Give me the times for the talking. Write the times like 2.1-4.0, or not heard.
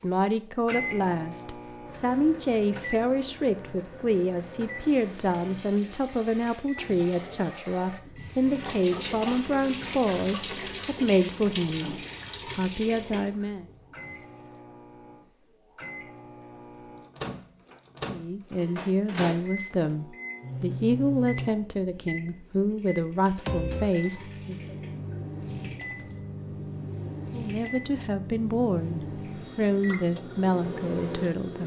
0.0-13.7, 18.1-24.8, 27.3-31.6.